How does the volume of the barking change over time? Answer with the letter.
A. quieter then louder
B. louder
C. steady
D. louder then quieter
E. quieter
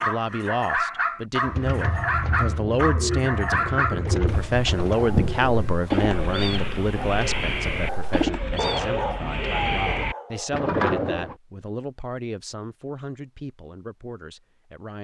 A.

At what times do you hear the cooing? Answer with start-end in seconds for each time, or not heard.
1.4-11.3.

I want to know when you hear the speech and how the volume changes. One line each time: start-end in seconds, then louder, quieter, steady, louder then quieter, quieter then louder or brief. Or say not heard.
0.0-15.0 quieter.